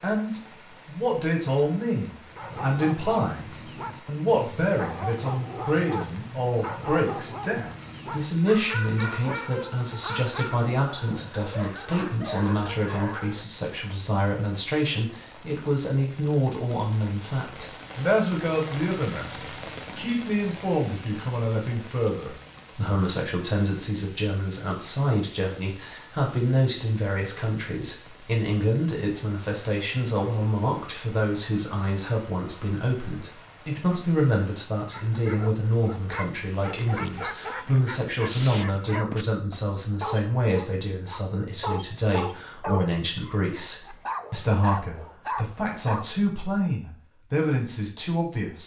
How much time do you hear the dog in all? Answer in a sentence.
The dog can be heard for 22 seconds in total.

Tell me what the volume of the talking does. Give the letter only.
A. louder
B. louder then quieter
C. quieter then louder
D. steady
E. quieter
D.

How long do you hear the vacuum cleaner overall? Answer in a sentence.
The vacuum cleaner can't be heard in this clip.